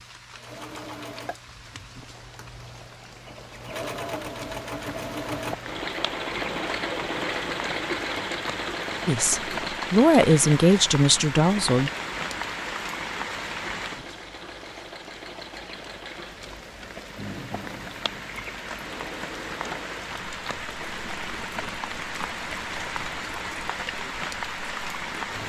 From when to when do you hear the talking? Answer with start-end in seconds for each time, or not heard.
9.1-11.9.